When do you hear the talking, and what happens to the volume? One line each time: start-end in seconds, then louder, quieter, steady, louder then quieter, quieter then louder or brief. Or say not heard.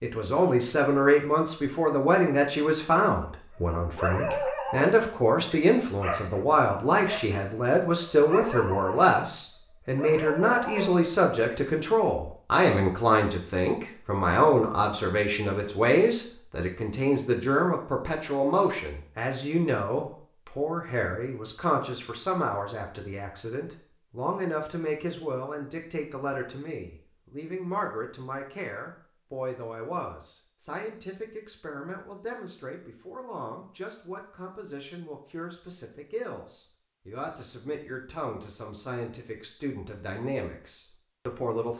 0.0-41.7 quieter.